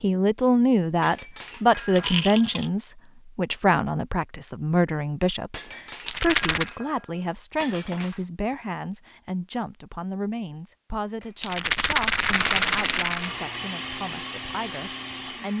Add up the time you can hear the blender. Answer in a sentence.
The blender can be heard for 3 seconds in total.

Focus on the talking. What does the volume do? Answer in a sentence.
The volume of the talking goes down.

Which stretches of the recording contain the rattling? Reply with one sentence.
The rattling can be heard from 1.9 to 2.7 s, from 6.0 to 6.7 s and from 11.4 to 13.3 s.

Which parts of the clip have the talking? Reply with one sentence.
You can hear the talking from 0.0 to 15.5 s.